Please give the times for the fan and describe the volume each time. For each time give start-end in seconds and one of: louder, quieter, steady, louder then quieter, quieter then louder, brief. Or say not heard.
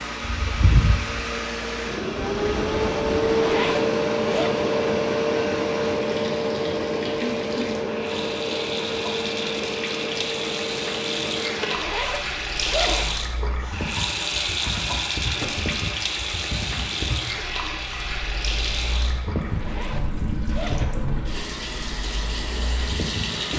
0.0-23.4 quieter.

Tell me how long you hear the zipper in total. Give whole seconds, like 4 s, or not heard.
4 s.